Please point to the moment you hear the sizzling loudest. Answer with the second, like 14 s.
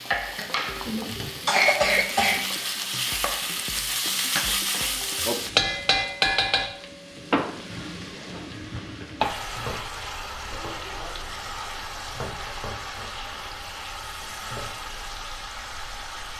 6 s.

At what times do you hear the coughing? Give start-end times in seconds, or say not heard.
0.3-2.4.